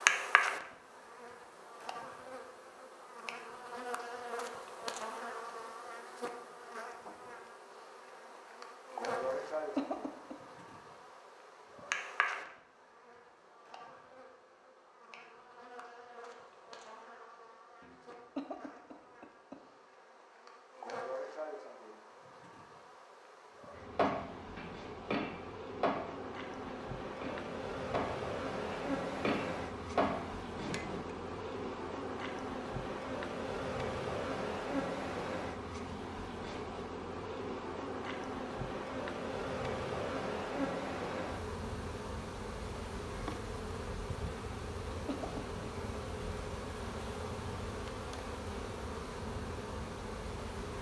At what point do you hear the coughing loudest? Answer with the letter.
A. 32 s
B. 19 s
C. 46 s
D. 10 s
D.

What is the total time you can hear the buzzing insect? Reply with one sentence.
You can hear the buzzing insect for 51 seconds altogether.